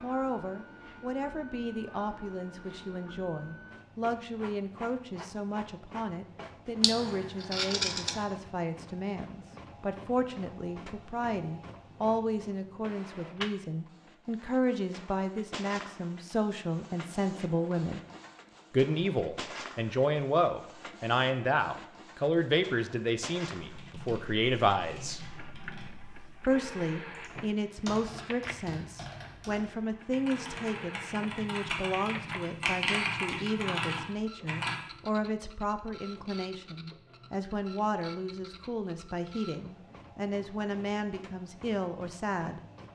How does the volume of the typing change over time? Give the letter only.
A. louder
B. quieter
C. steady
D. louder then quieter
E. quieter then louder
A.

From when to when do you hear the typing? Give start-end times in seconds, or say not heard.
23.6-34.8.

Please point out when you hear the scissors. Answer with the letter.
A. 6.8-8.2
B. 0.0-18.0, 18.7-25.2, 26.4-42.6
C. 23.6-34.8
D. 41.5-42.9
A.